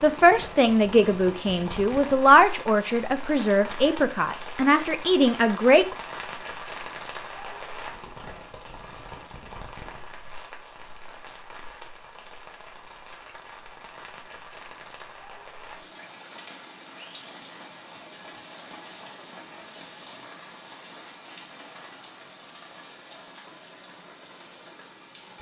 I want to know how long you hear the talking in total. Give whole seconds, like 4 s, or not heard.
6 s.